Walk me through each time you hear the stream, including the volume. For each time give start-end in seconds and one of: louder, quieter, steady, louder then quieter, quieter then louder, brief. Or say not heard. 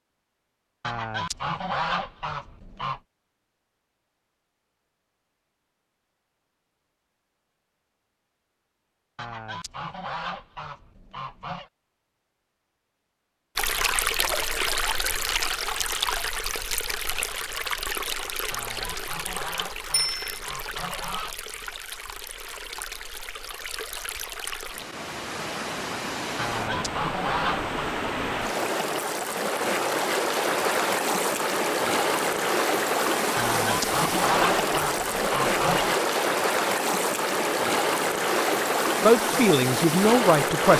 13.6-40.7 quieter then louder.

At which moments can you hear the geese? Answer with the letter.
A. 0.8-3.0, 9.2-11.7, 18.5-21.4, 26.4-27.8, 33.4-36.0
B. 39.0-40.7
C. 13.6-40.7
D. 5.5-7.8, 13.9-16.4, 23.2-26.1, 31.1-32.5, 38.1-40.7
A.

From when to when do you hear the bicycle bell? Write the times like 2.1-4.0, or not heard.
19.9-20.4.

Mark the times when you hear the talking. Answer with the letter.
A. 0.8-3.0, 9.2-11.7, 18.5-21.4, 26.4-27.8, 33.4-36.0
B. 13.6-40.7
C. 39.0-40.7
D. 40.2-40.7
C.